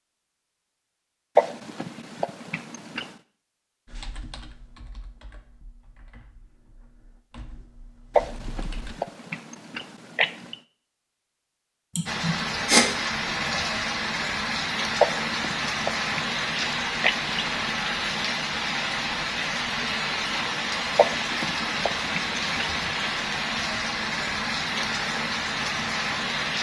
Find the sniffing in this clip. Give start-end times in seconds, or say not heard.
11.9-12.8.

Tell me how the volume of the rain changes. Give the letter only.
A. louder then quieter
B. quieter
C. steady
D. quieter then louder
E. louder
C.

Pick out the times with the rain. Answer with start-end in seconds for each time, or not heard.
12.1-26.5.